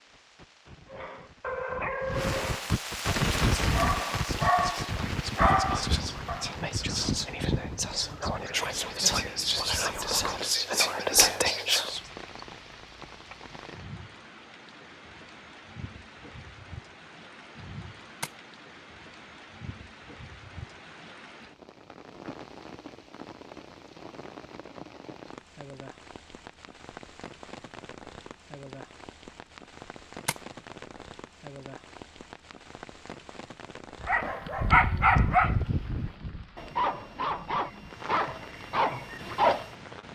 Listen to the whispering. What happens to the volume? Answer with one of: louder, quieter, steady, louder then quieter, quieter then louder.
louder.